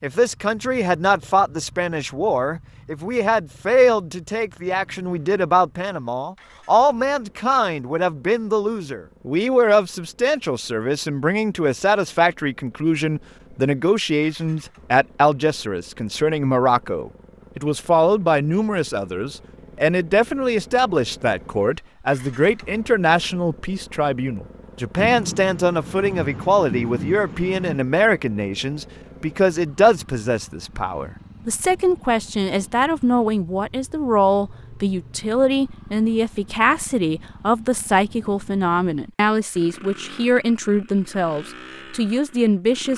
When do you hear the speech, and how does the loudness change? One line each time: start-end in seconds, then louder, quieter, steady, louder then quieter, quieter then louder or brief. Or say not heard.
0.0-42.9 steady.